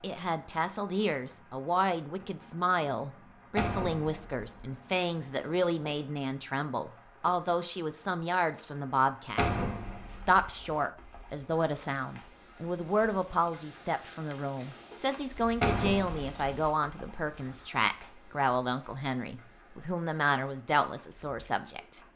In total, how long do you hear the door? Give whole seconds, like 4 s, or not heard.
3 s.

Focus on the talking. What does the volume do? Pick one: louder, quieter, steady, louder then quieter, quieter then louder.
steady.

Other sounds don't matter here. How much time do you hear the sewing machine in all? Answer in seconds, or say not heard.
not heard.